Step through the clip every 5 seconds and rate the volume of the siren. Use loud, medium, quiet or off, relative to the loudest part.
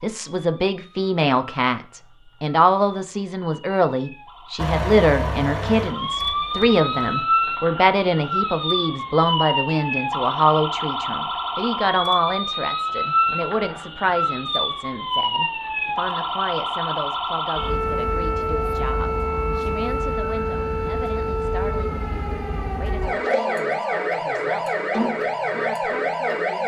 quiet, loud, loud, loud, loud, loud.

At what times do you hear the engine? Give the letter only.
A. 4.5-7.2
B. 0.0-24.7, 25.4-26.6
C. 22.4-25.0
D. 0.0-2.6
A.